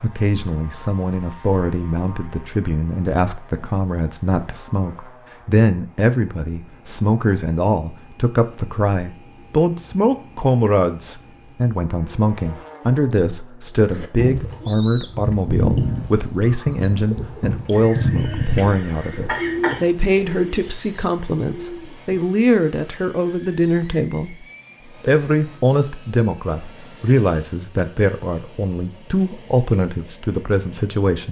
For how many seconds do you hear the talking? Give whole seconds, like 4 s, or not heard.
31 s.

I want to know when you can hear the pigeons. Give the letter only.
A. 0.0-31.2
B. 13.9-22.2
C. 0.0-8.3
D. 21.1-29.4
B.